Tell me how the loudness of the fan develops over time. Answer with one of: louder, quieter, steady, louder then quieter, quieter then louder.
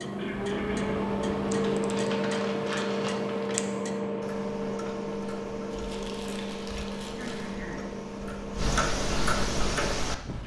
quieter.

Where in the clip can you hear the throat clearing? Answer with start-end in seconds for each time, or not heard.
0.1-1.1, 7.2-8.0.